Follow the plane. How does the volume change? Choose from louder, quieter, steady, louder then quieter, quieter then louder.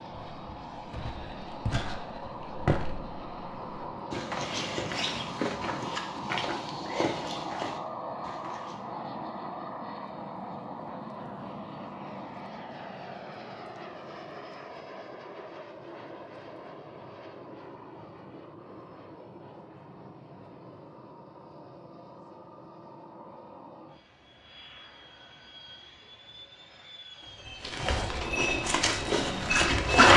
quieter.